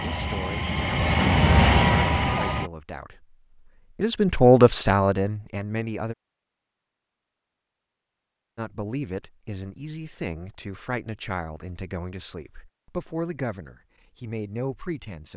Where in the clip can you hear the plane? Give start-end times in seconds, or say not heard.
0.0-2.7.